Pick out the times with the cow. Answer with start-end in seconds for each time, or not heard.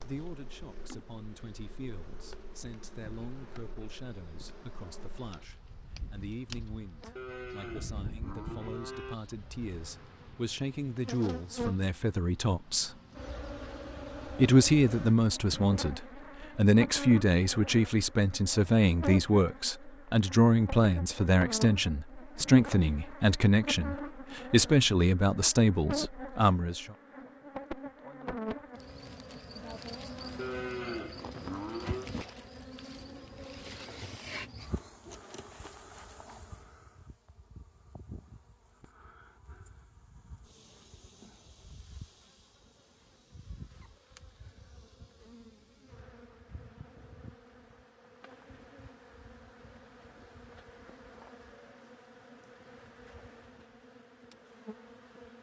7.2-9.2, 30.4-32.1.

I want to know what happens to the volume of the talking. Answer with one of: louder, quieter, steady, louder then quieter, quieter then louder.
louder.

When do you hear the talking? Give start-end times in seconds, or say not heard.
0.0-12.9, 14.3-26.9.